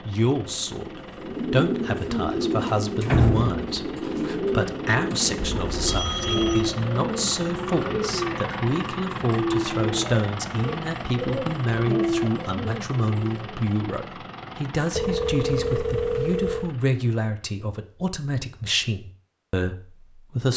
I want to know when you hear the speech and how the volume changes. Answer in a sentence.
You can hear the speech from 0.1 to 20.5 s, at a steady volume.